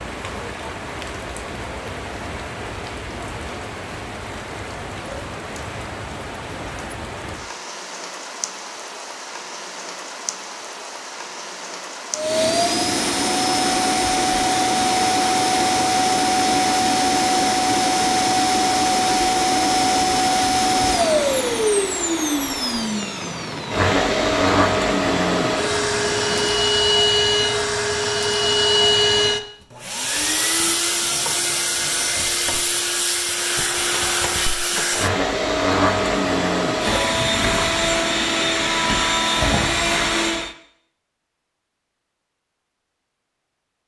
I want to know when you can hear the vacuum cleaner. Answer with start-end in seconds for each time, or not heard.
12.1-40.5.